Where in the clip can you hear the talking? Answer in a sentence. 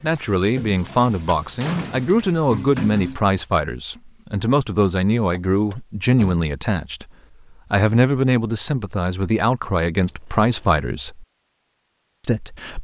The talking can be heard from 0.0 to 7.0 s, from 7.7 to 11.2 s and from 12.2 to 12.7 s.